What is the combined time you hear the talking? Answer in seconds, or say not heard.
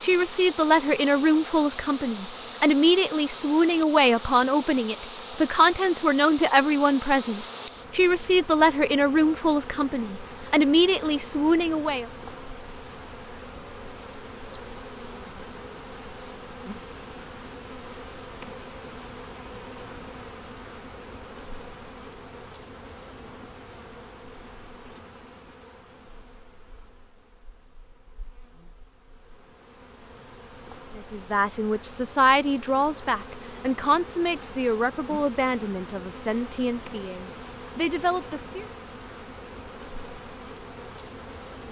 20 s.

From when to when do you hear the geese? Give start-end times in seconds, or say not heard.
not heard.